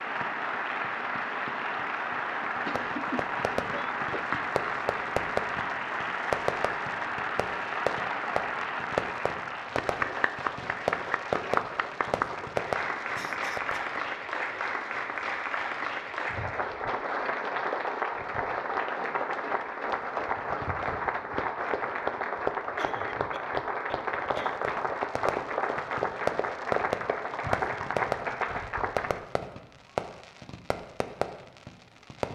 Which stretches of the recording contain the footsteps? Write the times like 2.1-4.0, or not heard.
not heard.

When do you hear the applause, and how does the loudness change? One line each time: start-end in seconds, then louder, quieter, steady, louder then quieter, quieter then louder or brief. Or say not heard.
0.0-29.2 steady.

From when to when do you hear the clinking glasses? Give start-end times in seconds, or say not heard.
not heard.